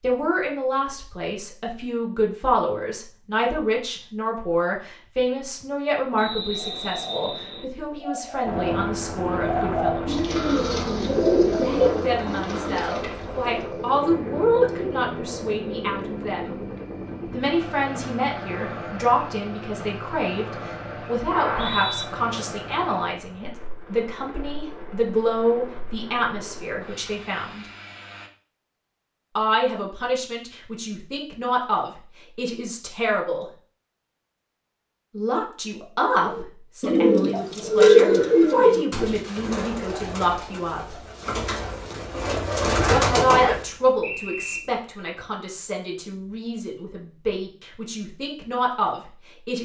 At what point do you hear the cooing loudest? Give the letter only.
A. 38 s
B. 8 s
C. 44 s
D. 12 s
A.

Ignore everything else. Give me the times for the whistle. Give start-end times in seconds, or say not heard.
6.2-7.7, 21.3-22.1, 43.4-44.6.